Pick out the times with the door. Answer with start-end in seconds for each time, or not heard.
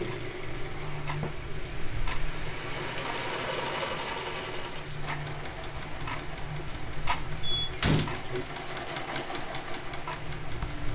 7.4-8.8.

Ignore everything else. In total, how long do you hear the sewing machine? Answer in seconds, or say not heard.
11 s.